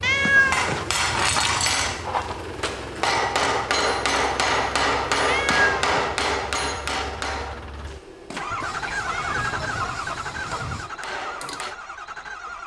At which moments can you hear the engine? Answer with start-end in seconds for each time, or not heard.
0.0-12.6.